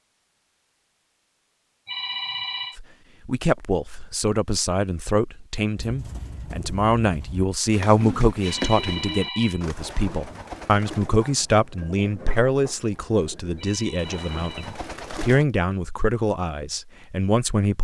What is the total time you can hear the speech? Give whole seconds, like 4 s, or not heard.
15 s.